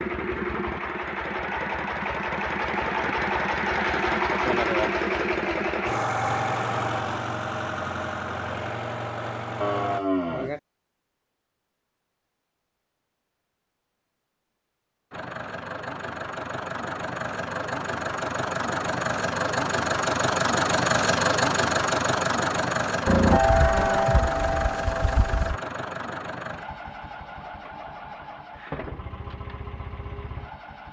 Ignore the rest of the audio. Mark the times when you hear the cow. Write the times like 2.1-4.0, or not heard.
9.6-10.6, 23.1-25.6.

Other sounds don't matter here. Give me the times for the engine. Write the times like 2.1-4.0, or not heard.
0.0-10.0, 15.1-30.8.